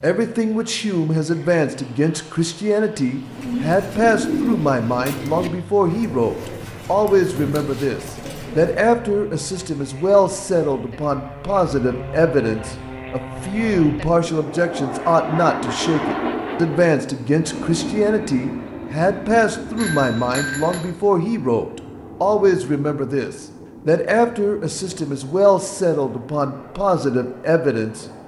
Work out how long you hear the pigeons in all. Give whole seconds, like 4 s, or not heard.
6 s.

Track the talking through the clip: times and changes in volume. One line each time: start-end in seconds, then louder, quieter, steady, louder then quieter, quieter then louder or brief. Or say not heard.
0.0-28.1 steady.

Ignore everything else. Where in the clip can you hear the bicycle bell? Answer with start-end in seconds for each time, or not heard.
19.8-20.8.